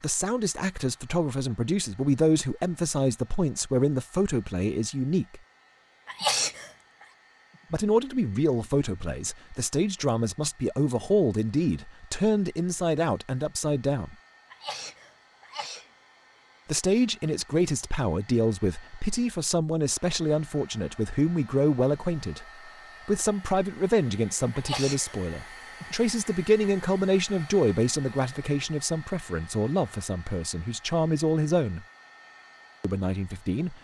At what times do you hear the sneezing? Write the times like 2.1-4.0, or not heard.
6.0-7.0, 14.5-15.8, 24.5-25.1.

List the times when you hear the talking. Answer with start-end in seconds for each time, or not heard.
0.0-5.4, 7.7-14.2, 16.6-22.4, 23.1-31.9, 32.8-33.8.